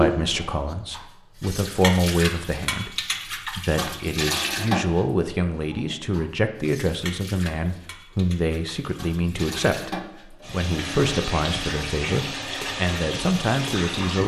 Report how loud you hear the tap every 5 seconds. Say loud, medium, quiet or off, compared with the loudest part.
loud, medium, loud.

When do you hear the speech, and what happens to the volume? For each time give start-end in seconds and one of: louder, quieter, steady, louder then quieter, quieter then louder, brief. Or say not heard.
0.0-14.2 steady.